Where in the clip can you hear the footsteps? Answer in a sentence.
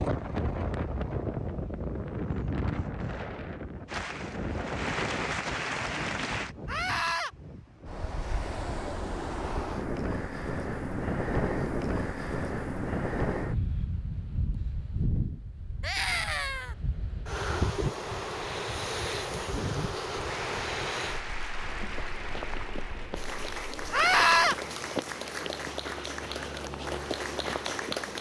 The footsteps can be heard from 21.6 to 28.1 s.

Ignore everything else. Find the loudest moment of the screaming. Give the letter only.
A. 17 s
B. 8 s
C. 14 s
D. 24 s
D.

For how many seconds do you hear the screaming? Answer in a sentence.
You can hear the screaming for 2 seconds altogether.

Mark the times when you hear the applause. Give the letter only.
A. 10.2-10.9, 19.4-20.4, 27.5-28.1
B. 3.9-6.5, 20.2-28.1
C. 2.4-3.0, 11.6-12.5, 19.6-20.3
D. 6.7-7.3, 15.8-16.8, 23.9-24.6
B.